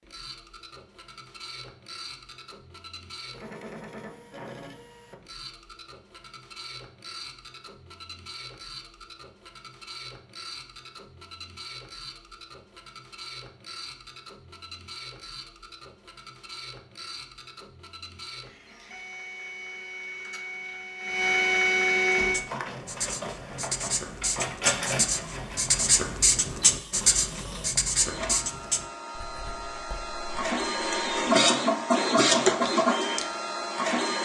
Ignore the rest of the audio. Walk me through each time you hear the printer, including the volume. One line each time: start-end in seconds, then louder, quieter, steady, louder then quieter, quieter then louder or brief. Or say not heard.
0.0-34.2 louder.